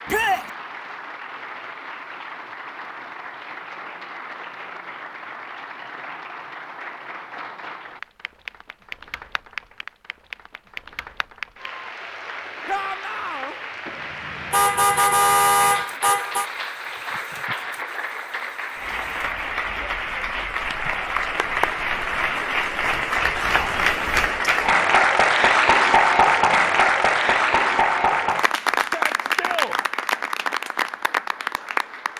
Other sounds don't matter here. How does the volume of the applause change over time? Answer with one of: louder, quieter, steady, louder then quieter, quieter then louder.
louder.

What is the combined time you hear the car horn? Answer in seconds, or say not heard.
2 s.